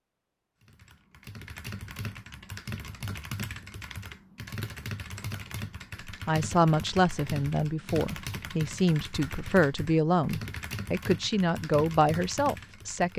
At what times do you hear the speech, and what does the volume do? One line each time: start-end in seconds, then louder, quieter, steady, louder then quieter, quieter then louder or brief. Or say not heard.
6.0-13.1 steady.